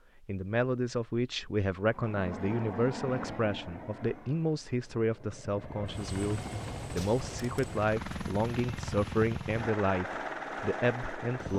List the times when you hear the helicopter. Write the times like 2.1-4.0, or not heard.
1.9-11.5.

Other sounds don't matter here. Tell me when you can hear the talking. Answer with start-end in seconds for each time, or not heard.
0.2-11.5.